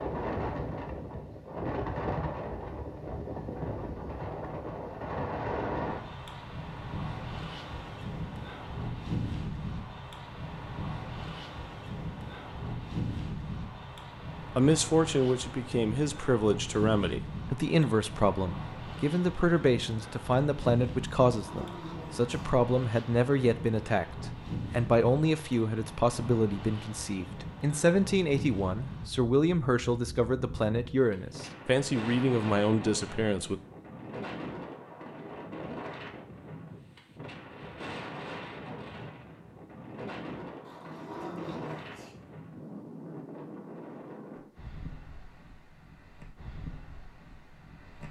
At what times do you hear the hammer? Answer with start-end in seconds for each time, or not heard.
not heard.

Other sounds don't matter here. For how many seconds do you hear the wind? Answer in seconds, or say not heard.
48 s.